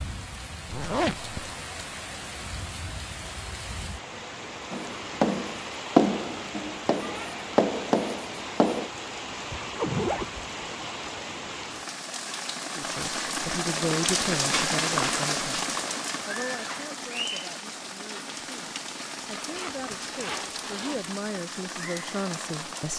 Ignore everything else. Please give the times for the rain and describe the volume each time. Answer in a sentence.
The rain can be heard from 0.0 to 22.9 s, getting louder then quieter.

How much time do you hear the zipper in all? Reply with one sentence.
You can hear the zipper for 3 seconds altogether.